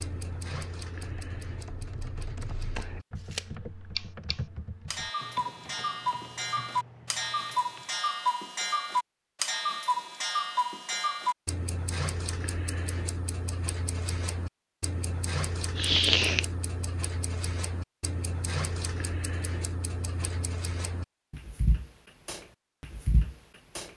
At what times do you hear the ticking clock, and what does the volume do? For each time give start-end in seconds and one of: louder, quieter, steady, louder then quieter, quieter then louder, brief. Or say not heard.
0.0-23.9 louder then quieter.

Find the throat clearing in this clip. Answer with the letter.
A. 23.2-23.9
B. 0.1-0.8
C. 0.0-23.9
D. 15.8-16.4
D.